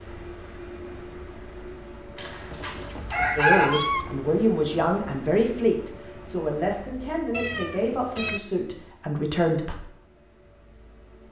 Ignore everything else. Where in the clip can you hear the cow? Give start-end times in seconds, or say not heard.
not heard.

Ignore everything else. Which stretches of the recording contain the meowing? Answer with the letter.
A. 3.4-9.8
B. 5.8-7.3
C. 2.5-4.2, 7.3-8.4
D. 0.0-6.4
C.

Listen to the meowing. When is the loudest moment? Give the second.
4 s.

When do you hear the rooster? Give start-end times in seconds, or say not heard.
2.1-3.7.